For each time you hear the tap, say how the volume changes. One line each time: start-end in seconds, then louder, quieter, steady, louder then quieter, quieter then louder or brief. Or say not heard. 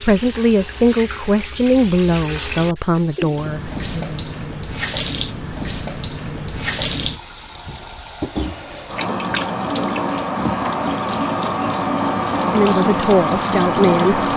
0.0-14.3 louder.